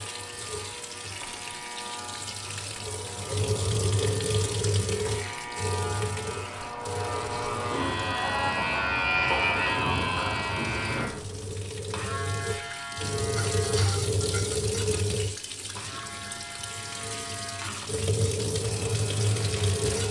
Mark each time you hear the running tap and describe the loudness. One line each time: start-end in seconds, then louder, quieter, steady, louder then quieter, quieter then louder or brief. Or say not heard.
0.0-20.0 quieter then louder.